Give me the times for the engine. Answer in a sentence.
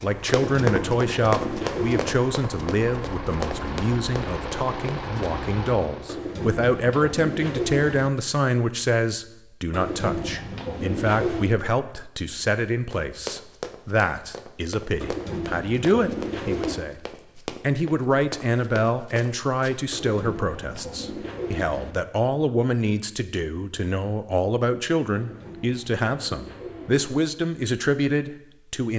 You can hear the engine from 0.0 to 6.2 s.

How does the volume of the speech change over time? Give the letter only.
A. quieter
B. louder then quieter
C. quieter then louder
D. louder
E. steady
E.